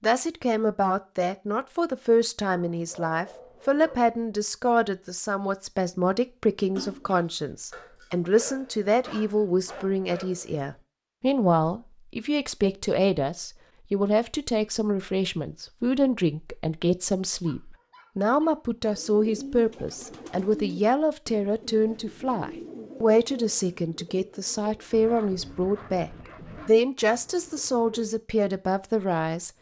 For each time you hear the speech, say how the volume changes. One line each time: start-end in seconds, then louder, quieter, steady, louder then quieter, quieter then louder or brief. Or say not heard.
0.0-29.5 steady.